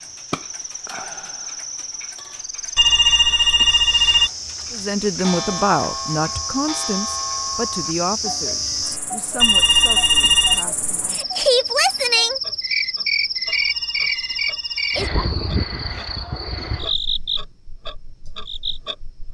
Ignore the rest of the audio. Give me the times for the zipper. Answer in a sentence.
You can't hear the zipper here.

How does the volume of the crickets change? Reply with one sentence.
The volume of the crickets goes up, then down.